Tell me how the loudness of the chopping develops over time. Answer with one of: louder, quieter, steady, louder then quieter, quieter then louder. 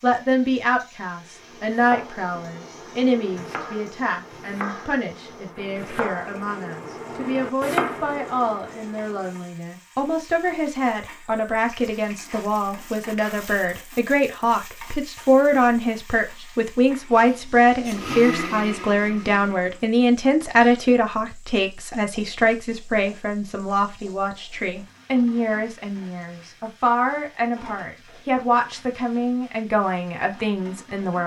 louder.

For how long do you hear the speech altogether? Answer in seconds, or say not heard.
31 s.